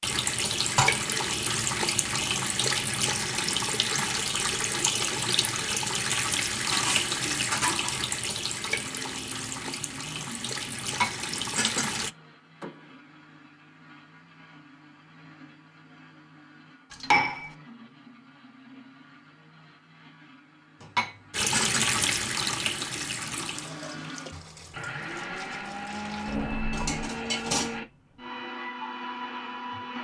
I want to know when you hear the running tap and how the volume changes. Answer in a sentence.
You can hear the running tap from 0.0 to 12.1 s, getting quieter; and from 21.3 to 26.4 s, getting quieter.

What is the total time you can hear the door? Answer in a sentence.
The door can be heard for 2 seconds in total.